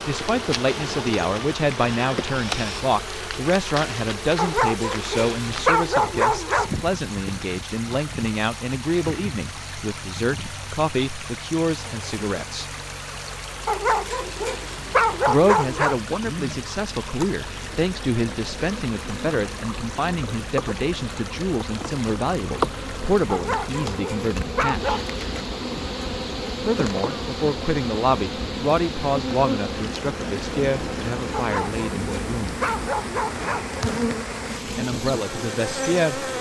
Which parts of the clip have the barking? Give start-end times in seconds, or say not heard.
4.3-6.8, 13.7-15.9, 23.3-25.1, 31.3-33.8.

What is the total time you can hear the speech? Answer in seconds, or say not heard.
30 s.